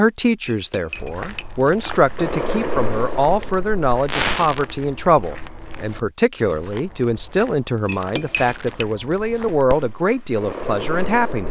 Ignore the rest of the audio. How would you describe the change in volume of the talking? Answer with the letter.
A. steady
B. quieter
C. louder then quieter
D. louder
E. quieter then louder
A.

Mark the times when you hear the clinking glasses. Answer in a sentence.
The clinking glasses can be heard from 0.5 to 2.0 s and from 7.8 to 8.8 s.